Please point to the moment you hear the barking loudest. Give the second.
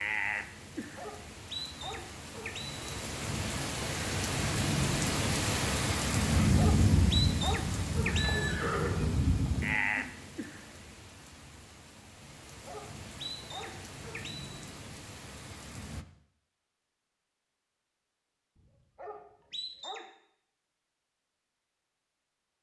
7 s.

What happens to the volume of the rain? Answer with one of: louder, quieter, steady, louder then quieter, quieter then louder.
louder then quieter.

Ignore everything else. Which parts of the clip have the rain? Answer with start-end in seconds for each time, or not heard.
0.0-16.1.